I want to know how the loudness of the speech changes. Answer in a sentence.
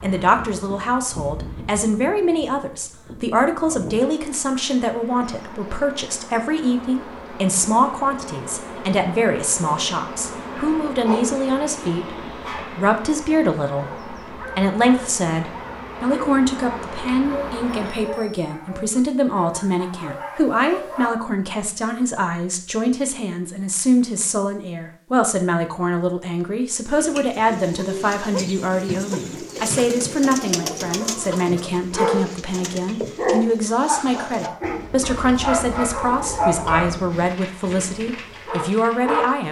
The loudness of the speech stays about the same.